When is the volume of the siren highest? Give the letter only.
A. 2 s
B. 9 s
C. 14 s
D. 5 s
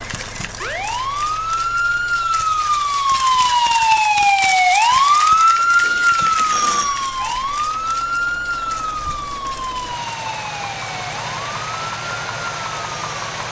D.